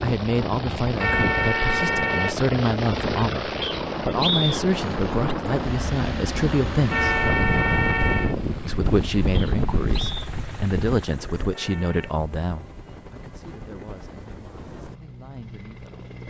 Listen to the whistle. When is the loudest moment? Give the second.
4 s.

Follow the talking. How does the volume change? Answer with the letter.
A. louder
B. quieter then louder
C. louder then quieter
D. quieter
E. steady
D.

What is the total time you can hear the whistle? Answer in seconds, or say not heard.
2 s.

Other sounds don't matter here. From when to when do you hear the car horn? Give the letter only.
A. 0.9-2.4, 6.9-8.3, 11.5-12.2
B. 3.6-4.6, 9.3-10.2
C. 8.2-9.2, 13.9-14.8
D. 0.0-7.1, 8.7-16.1
A.